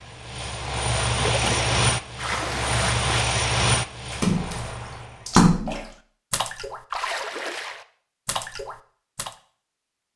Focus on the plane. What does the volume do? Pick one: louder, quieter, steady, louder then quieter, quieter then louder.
quieter.